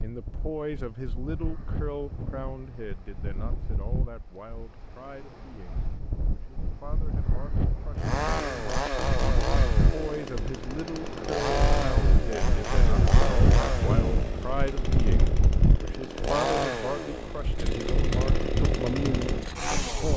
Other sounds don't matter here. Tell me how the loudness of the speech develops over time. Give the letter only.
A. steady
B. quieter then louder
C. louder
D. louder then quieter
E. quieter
B.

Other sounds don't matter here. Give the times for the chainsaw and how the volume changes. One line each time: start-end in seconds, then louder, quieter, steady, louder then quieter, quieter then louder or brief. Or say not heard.
8.0-20.1 steady.